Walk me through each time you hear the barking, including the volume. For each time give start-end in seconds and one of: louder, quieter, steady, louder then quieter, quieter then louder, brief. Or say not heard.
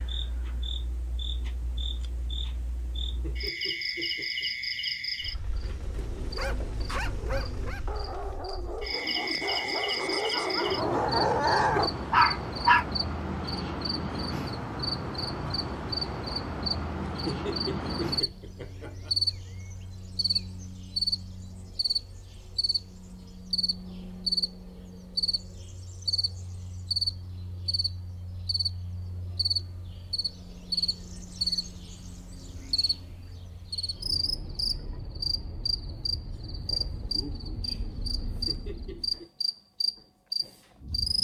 6.2-12.8 louder.